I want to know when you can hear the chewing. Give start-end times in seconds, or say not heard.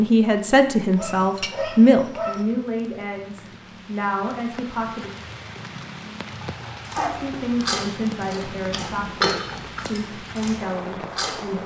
6.8-11.6.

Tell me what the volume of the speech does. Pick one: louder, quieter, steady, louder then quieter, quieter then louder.
quieter.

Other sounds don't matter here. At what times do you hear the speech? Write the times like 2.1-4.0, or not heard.
0.0-5.1, 7.0-11.6.